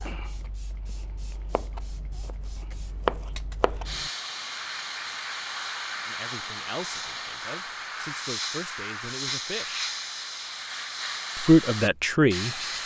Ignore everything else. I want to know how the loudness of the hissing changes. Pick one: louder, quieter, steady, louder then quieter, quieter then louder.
louder.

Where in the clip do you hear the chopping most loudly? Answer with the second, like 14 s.
3 s.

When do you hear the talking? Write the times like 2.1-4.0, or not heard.
6.0-9.9, 11.3-12.6.